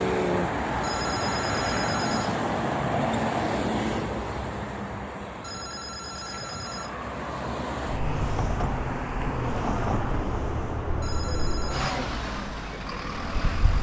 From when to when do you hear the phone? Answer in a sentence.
You can hear the phone from 0.8 to 2.4 s, from 5.4 to 7.0 s and from 11.0 to 11.9 s.